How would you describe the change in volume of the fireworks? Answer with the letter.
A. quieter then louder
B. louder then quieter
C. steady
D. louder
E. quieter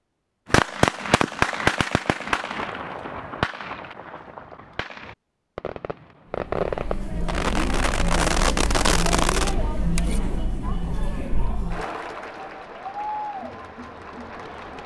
A.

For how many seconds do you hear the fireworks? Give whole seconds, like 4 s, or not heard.
9 s.